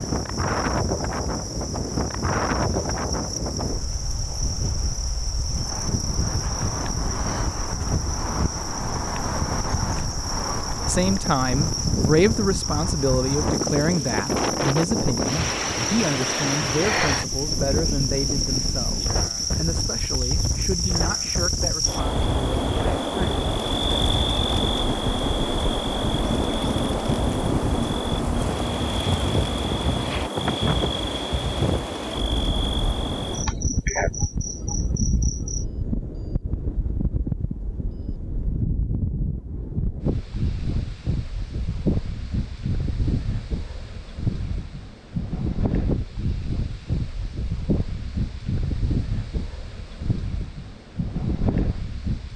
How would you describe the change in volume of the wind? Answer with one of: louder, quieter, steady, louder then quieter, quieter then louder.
steady.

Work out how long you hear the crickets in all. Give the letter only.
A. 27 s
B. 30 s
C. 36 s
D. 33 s
C.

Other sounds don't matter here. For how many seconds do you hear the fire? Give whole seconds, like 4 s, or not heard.
not heard.